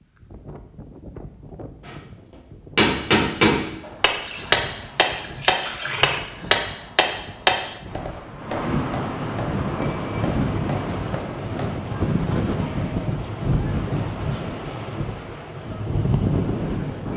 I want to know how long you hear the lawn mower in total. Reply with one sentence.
You can't hear the lawn mower here.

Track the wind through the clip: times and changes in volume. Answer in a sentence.
The wind can be heard from 0.0 to 17.1 s, getting louder.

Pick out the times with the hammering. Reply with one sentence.
The hammering can be heard from 2.8 to 11.8 s.